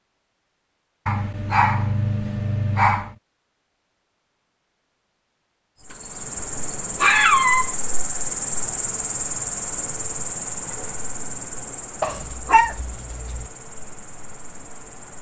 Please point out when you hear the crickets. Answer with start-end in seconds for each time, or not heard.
5.8-15.1.